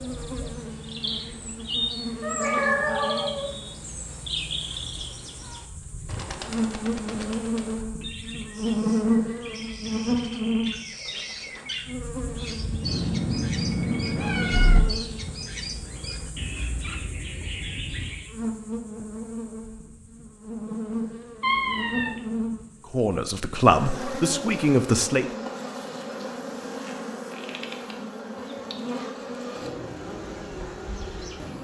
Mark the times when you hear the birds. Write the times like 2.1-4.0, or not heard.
0.0-18.3.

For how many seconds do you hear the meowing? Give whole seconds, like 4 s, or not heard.
4 s.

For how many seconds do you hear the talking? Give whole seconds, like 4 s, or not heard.
2 s.